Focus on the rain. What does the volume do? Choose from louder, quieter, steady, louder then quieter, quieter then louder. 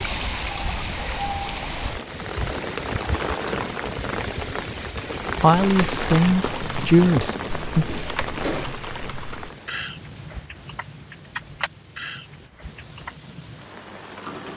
quieter.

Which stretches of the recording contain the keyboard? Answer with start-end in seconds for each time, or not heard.
5.6-13.2.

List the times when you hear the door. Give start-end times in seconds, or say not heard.
7.4-8.8.